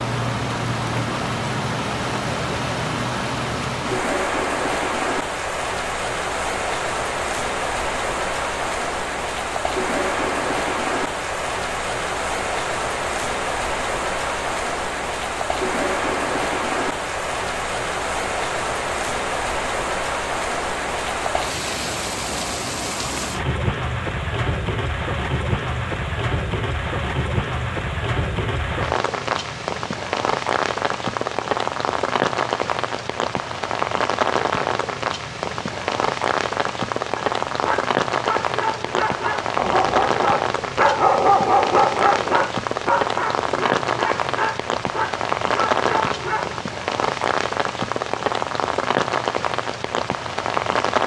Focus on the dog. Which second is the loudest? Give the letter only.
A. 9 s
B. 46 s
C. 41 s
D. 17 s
C.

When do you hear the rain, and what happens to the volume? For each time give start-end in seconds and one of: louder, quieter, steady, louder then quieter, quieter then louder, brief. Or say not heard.
0.0-51.0 steady.